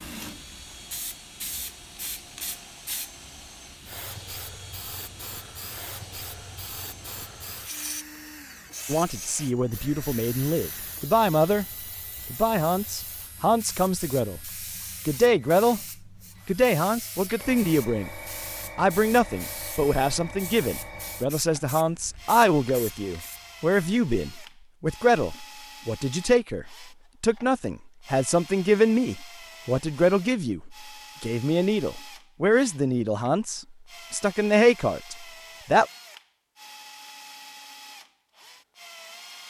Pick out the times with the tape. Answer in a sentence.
The tape can't be heard in this clip.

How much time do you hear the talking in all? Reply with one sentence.
You can hear the talking for 26 seconds altogether.